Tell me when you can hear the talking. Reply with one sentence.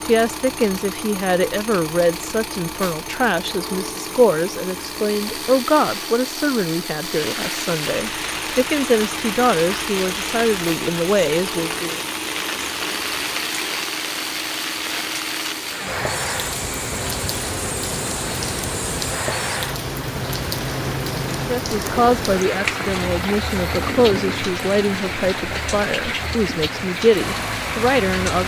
You can hear the talking from 0.1 to 12.0 s and from 21.4 to 28.4 s.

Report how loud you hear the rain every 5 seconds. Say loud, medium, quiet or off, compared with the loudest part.
off, loud, loud, loud, loud, loud.